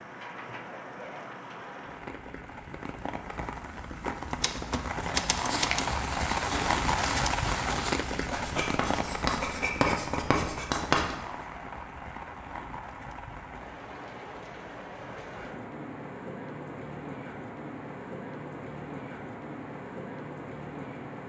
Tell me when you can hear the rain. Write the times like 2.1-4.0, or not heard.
0.0-21.2.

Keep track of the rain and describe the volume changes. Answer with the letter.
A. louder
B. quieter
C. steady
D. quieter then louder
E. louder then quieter
E.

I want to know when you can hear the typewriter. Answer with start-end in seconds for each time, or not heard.
4.4-5.8.